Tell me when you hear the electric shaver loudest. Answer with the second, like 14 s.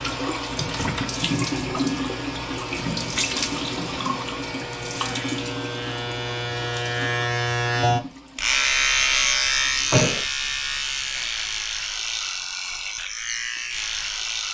9 s.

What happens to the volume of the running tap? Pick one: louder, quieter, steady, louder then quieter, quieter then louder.
quieter.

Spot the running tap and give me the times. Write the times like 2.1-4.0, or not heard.
0.0-11.3.